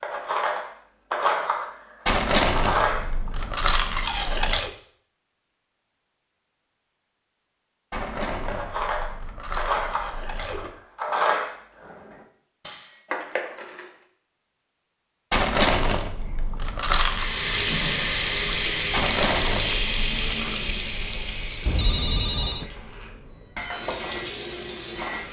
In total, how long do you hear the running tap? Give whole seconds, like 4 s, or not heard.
8 s.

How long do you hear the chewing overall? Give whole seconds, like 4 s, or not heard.
9 s.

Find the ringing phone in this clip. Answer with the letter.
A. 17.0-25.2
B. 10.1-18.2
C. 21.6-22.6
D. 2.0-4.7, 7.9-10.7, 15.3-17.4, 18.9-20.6
C.